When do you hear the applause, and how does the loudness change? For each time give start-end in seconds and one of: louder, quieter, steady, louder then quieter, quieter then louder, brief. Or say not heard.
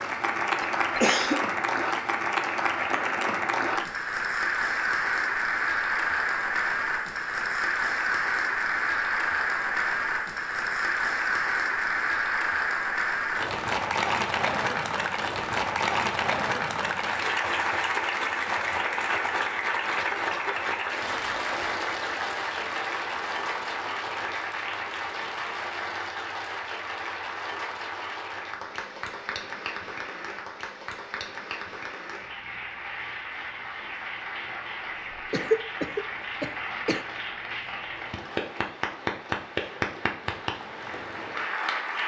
0.0-42.0 quieter.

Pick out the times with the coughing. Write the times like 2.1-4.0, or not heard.
0.6-1.4, 19.9-20.6, 35.3-37.0.